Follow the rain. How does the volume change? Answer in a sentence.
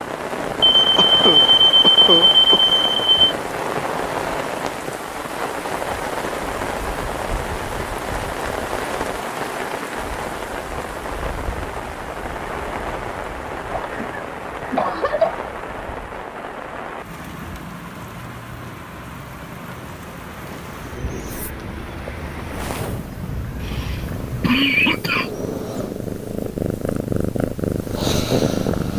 The loudness of the rain goes down.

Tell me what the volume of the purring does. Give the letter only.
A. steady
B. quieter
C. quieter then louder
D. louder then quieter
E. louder
E.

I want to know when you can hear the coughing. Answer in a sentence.
You can hear the coughing from 0.9 to 2.6 s, from 13.8 to 15.4 s and from 23.6 to 25.3 s.